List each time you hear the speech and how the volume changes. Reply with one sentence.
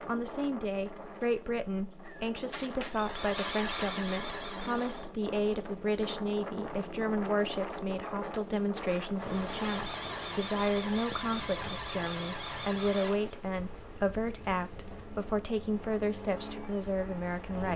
The speech can be heard from 0.1 to 17.7 s, at a steady volume.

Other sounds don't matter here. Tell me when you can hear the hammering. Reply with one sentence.
The hammering can't be heard in this clip.